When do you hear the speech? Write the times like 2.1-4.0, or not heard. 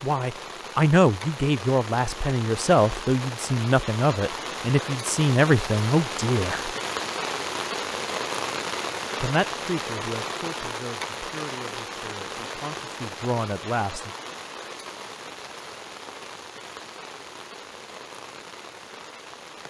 0.0-6.7, 9.2-14.1.